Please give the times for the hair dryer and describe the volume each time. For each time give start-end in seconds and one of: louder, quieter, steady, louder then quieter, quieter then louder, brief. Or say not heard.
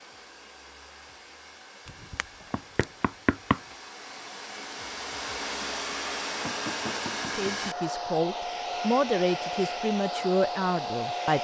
0.0-11.3 louder.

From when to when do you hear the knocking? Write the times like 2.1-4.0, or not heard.
1.9-3.6, 6.5-7.7.